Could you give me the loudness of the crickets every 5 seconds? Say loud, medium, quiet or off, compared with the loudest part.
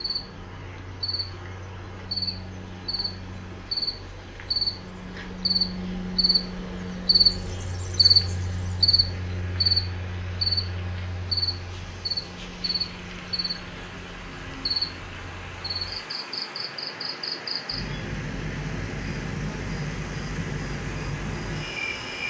medium, loud, medium, medium, medium.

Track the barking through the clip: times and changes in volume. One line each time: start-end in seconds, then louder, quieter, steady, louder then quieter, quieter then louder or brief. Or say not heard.
not heard.